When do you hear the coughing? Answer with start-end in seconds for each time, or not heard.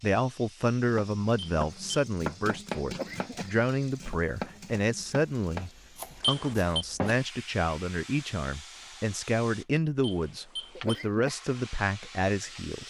2.9-3.5, 10.8-11.3.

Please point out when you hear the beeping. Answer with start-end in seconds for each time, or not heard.
1.4-2.0, 6.2-6.8, 10.0-11.1.